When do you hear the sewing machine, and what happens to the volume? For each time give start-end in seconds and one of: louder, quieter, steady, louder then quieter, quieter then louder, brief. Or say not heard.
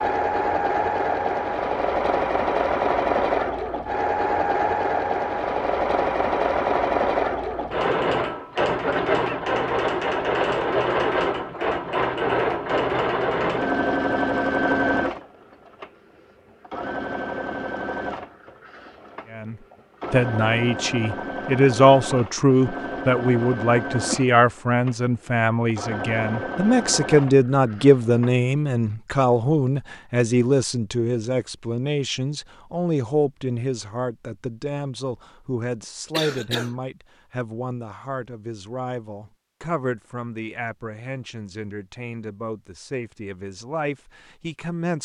0.0-28.4 quieter.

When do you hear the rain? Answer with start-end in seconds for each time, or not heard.
not heard.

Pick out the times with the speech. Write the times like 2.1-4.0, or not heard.
19.3-45.0.